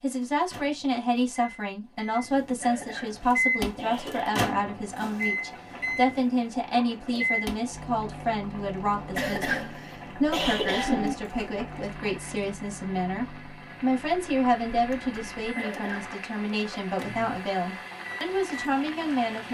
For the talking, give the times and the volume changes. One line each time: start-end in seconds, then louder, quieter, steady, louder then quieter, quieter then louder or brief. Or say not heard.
0.0-19.4 steady.